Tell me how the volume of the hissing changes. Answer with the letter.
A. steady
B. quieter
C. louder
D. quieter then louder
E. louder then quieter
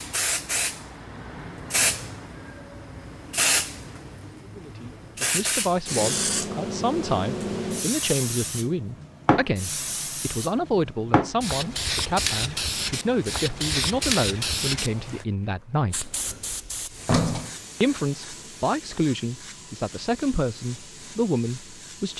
B.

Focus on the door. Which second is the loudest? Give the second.
17 s.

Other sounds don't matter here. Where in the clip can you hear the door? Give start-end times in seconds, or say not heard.
15.9-17.5.